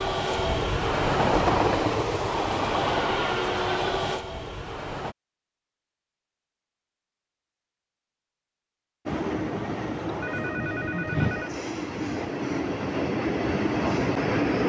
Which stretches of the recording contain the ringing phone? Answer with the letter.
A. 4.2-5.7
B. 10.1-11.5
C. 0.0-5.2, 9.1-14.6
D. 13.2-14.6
B.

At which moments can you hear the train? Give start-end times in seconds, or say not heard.
0.0-5.2, 9.1-14.6.